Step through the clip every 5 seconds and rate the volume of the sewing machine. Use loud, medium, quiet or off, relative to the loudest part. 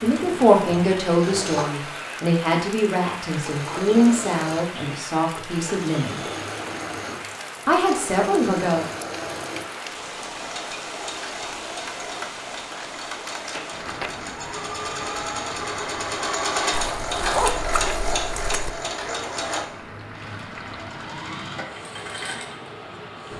medium, medium, medium, loud, medium.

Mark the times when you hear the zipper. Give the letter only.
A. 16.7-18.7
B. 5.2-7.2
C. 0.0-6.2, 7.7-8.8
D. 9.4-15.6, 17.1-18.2
A.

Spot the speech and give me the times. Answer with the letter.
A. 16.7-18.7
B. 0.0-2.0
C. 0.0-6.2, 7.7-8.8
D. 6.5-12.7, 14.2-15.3
C.